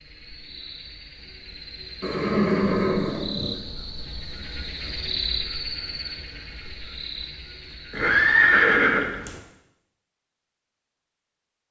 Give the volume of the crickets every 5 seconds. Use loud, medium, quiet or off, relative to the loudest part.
medium, loud, off.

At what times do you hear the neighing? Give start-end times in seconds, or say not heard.
2.0-3.5, 7.9-9.4.